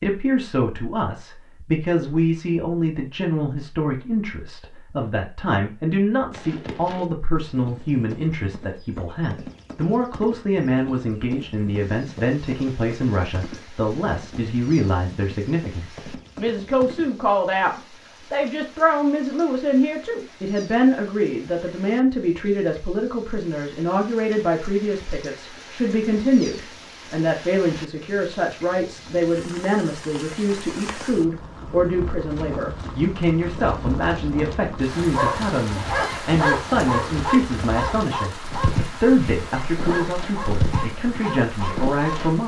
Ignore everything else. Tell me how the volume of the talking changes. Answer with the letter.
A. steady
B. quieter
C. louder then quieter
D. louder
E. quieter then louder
A.